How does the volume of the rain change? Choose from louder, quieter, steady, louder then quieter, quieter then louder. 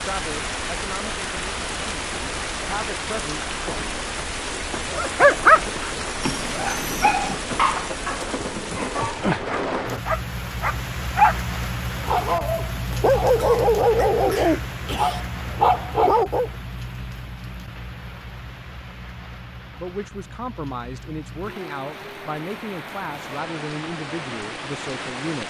quieter.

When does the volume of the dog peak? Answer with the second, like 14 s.
5 s.